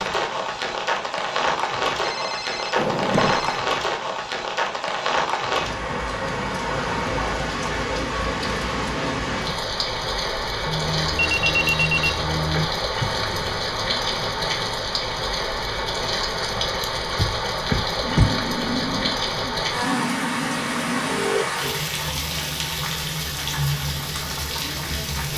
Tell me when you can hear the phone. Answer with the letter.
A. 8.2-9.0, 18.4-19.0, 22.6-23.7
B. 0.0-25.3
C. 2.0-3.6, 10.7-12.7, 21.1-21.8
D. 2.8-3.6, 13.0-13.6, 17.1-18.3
C.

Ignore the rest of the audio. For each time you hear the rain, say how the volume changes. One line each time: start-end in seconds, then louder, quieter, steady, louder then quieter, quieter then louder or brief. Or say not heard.
0.0-25.3 steady.